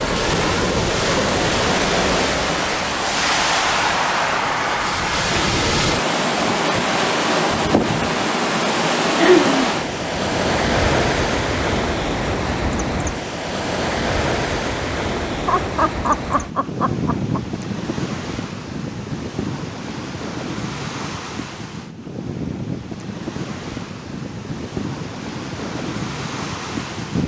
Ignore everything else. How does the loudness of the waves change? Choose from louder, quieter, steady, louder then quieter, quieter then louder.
quieter.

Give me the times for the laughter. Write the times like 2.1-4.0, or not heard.
9.2-9.7, 15.2-17.4.